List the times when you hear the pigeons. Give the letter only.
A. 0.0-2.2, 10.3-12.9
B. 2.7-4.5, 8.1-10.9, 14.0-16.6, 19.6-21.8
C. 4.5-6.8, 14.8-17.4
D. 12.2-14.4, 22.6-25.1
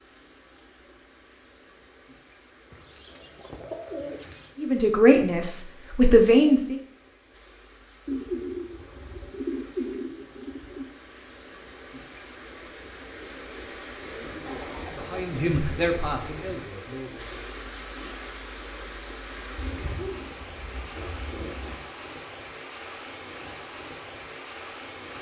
B.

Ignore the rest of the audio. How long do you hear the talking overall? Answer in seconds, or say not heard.
5 s.